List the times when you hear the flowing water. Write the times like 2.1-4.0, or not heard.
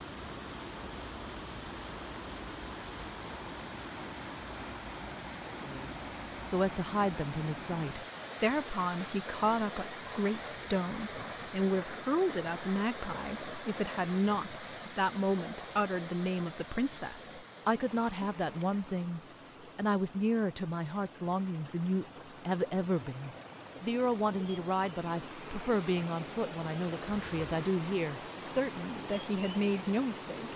0.0-30.5.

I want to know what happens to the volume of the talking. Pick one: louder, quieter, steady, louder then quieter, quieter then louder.
steady.